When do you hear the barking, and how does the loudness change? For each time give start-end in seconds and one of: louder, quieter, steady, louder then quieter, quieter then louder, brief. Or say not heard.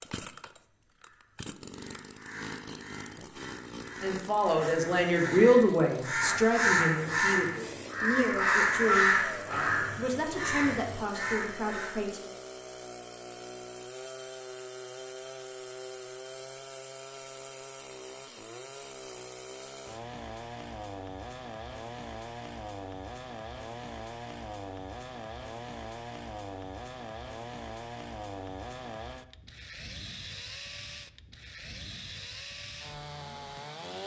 not heard.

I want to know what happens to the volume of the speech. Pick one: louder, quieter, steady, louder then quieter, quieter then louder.
quieter.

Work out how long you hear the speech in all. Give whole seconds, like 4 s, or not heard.
8 s.